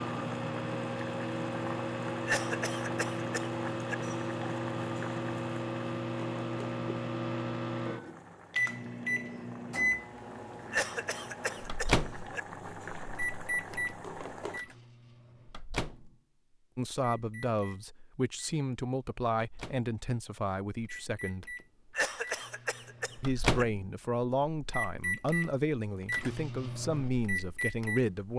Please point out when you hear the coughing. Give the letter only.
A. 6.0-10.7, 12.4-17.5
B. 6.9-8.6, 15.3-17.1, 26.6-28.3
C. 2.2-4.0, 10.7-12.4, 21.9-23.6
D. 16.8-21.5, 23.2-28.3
C.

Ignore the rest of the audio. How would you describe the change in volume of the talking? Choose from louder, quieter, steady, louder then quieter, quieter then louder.
steady.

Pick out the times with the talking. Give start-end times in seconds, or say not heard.
16.8-21.5, 23.2-28.3.